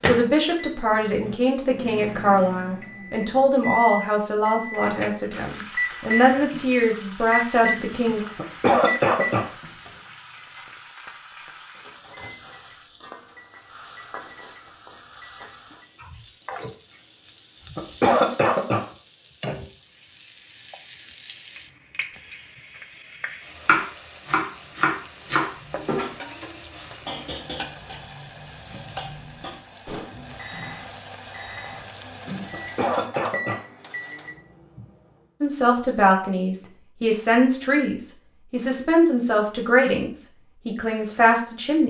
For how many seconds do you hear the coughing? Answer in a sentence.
The coughing can be heard for 3 seconds in total.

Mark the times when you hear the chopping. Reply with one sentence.
You can hear the chopping from 23.6 to 26.1 s.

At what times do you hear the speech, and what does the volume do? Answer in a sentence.
You can hear the speech from 0.0 to 8.2 s, at a steady volume; and from 35.4 to 41.8 s, at a steady volume.